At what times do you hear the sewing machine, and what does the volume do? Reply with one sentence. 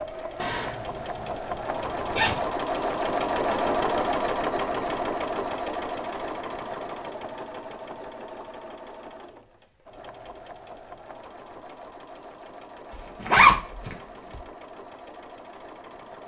The sewing machine can be heard from 0.0 to 16.2 s, getting quieter.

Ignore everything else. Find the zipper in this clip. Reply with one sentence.
The zipper can be heard from 0.4 to 2.4 s and from 12.9 to 14.4 s.